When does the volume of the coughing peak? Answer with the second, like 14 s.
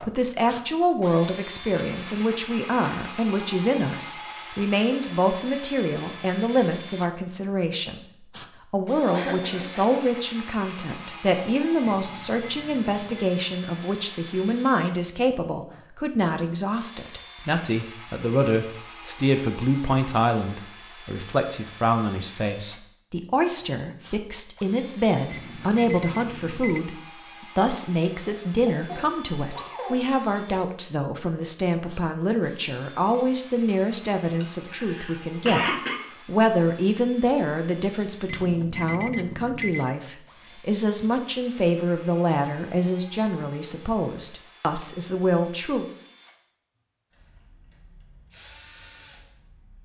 36 s.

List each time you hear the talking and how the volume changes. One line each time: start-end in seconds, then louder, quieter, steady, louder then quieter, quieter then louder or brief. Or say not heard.
0.0-45.9 steady.